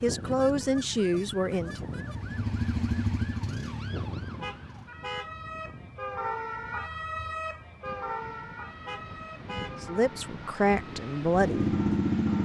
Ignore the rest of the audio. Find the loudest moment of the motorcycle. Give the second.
12 s.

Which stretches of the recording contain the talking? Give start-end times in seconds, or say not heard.
0.0-1.8, 9.8-11.7.